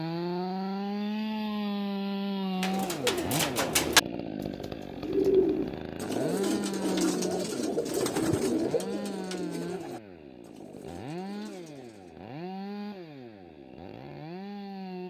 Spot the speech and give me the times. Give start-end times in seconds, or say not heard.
not heard.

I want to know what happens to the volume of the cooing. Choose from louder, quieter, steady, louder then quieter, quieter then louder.
quieter.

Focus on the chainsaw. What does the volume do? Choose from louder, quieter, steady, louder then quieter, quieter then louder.
quieter.